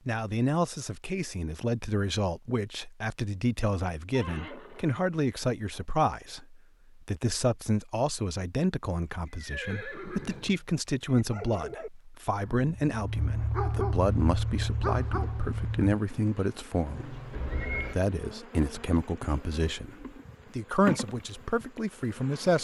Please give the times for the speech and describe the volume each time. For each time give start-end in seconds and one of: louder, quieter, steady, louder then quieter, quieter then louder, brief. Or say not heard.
0.1-22.6 steady.